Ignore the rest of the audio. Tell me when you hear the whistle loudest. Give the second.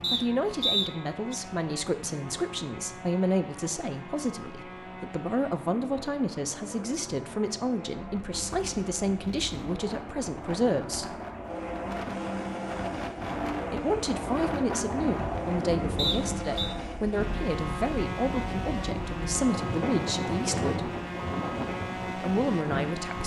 1 s.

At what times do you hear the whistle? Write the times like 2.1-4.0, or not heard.
0.0-1.4, 15.9-16.7.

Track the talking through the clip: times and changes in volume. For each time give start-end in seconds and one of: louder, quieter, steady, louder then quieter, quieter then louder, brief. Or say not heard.
0.1-11.2 steady
13.7-20.9 steady
22.1-23.2 brief.